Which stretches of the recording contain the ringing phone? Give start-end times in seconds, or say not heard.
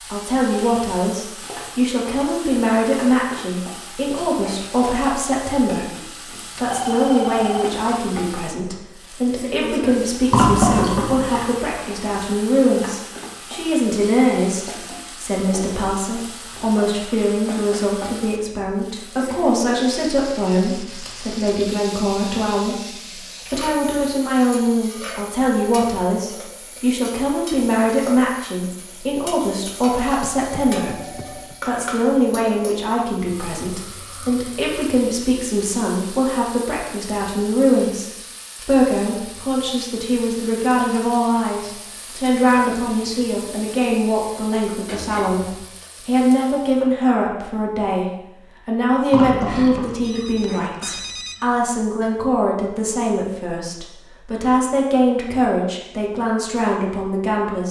6.5-7.9, 30.2-31.6, 49.5-51.4.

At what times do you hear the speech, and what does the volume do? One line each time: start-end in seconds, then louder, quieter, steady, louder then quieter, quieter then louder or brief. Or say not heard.
0.0-57.6 steady.